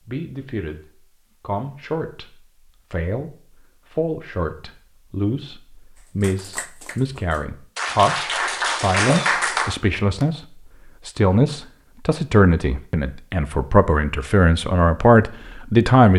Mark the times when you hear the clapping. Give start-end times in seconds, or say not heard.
6.2-10.2.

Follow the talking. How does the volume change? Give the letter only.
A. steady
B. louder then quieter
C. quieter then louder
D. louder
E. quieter
D.